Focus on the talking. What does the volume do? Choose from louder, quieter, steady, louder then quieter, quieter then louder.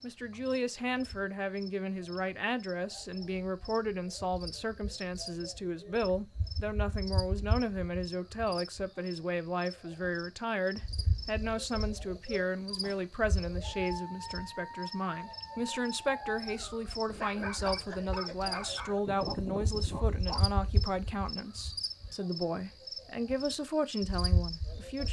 steady.